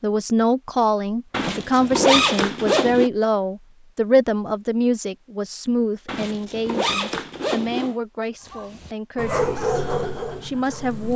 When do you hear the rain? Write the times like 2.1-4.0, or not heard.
not heard.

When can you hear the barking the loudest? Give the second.
10 s.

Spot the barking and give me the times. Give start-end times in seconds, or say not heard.
8.4-11.1.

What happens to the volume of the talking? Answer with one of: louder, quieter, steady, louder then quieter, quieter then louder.
quieter.